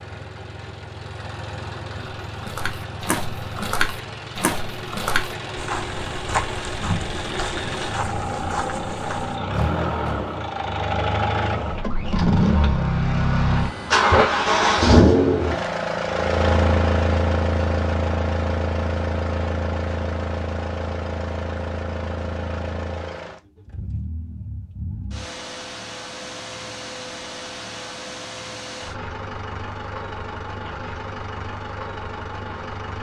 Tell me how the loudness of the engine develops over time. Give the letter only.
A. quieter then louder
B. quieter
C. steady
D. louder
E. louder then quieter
E.